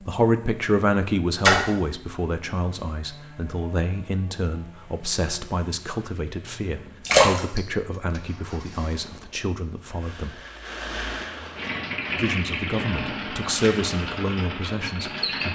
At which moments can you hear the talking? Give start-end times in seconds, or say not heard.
0.0-10.3, 12.2-15.5.